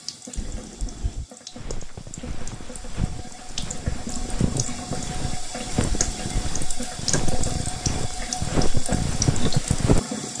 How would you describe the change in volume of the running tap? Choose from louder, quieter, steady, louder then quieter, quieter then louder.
louder.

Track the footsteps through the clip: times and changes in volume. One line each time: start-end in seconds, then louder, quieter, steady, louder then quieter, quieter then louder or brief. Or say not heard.
1.5-10.0 louder.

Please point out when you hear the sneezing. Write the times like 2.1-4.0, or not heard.
0.3-1.2, 5.9-6.4.